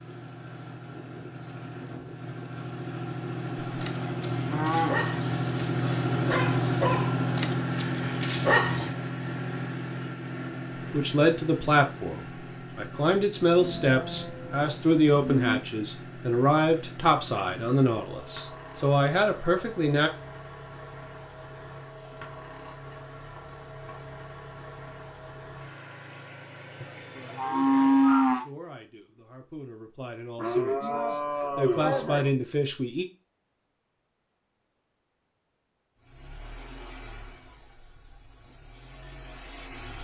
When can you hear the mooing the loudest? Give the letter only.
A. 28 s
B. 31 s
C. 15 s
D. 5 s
A.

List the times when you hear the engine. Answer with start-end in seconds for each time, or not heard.
0.0-28.5, 36.0-39.9.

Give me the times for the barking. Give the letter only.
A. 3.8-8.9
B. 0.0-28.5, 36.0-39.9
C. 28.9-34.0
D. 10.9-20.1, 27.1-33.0
A.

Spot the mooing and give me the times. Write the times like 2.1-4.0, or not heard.
3.5-5.0, 13.6-15.6, 26.8-28.4, 30.4-32.3.